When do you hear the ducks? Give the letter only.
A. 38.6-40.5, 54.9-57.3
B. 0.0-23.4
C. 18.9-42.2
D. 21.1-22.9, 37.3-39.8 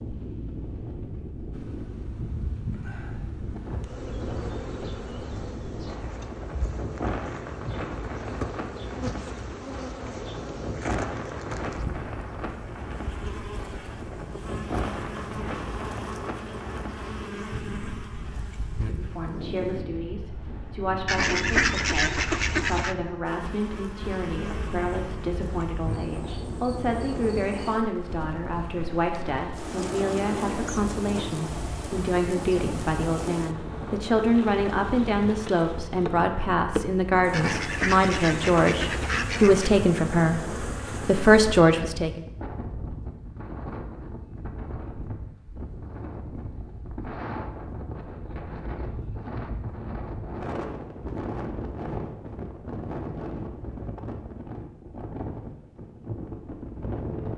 D.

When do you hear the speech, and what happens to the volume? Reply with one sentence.
You can hear the speech from 18.9 to 42.2 s, getting louder.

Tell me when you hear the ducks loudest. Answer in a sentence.
The loudest moment of the ducks is at 22 seconds.